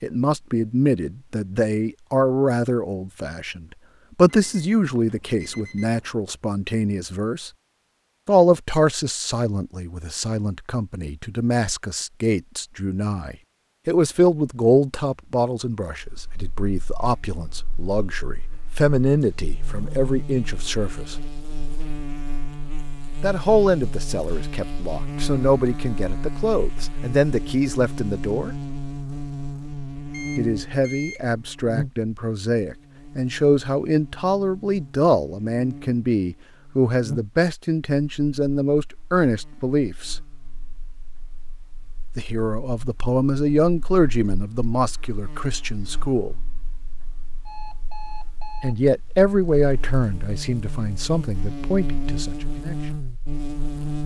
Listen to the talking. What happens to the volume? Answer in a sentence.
The loudness of the talking stays about the same.